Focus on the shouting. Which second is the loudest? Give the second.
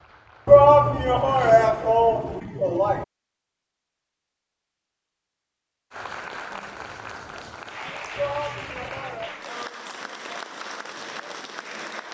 1 s.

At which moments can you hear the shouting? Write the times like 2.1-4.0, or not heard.
0.5-3.0, 8.2-9.3.